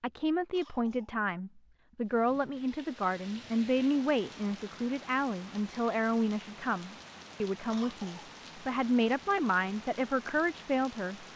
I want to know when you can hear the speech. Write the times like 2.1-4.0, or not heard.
0.0-11.2.